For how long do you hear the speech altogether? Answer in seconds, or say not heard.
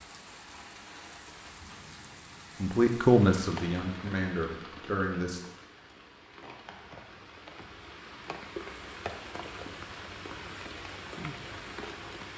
3 s.